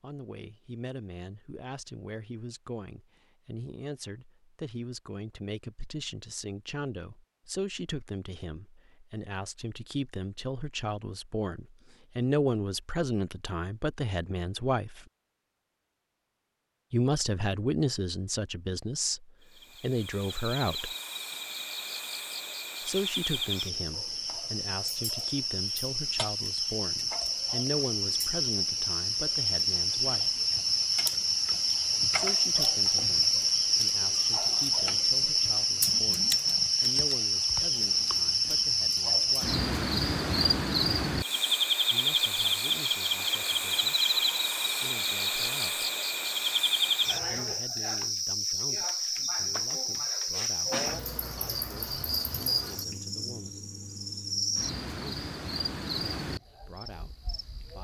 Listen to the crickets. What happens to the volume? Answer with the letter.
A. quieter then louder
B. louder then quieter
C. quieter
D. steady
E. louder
B.